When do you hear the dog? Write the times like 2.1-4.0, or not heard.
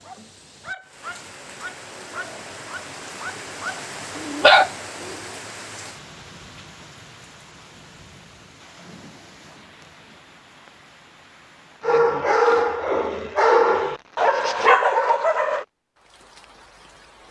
0.0-5.4, 11.8-15.7.